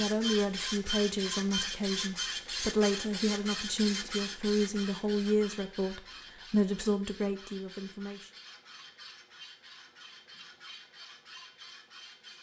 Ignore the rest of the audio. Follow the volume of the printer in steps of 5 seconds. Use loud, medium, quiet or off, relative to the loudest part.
loud, quiet, quiet.